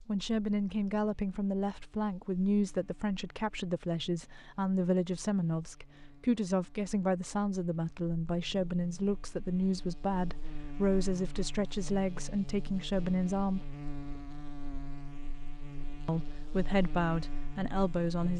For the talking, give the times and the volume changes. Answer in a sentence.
You can hear the talking from 0.1 to 13.7 s, at a steady volume; and briefly from 16.1 to 18.3 s.